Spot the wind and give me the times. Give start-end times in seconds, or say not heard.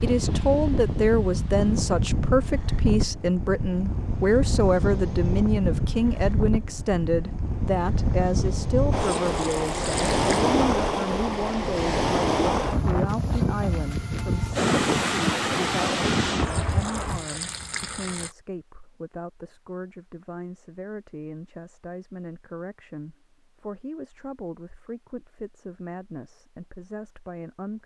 0.0-17.2.